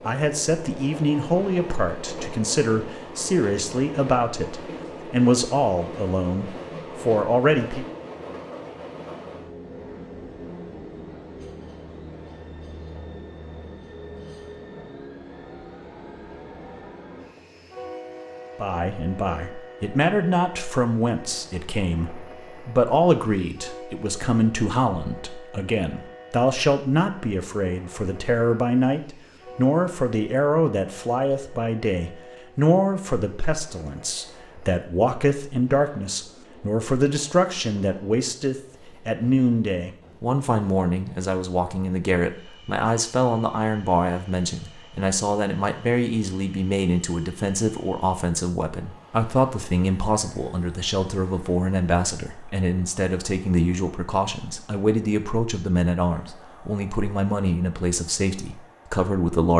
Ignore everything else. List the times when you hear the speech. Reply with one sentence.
You can hear the speech from 0.1 to 7.8 s and from 18.6 to 59.5 s.